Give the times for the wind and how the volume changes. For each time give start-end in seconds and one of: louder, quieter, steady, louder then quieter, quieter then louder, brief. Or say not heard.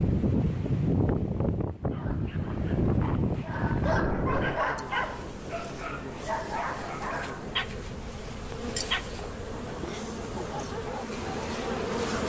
0.0-12.2 quieter.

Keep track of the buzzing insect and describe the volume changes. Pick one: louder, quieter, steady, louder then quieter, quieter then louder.
louder.